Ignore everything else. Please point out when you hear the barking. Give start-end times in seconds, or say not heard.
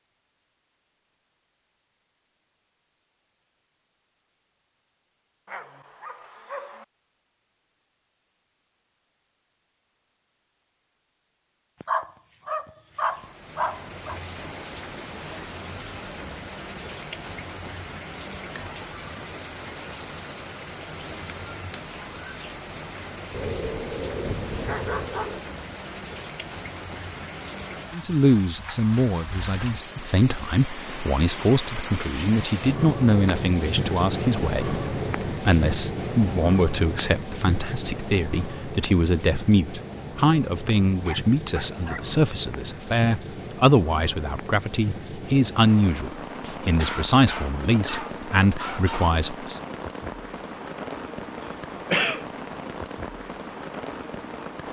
5.5-6.8, 11.8-14.2, 23.3-25.4, 41.0-42.1, 46.8-49.2.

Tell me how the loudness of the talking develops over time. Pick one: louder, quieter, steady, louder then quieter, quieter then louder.
steady.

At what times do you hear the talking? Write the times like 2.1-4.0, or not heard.
27.9-49.6.